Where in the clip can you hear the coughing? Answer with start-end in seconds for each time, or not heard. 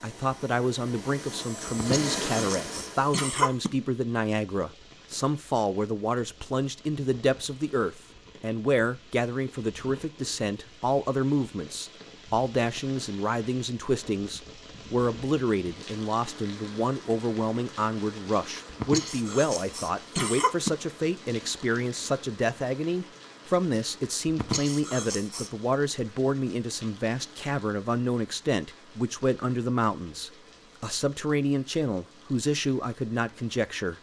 1.7-3.7, 18.6-20.7, 24.2-25.5.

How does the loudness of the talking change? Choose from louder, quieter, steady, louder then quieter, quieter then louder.
steady.